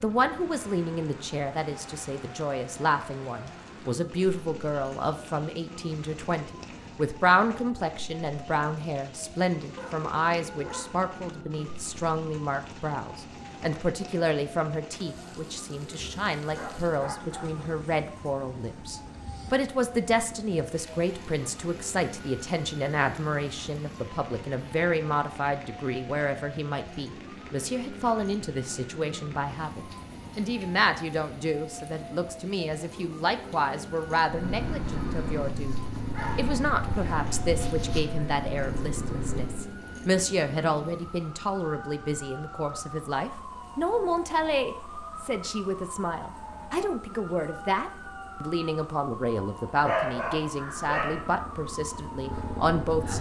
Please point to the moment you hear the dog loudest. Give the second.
50 s.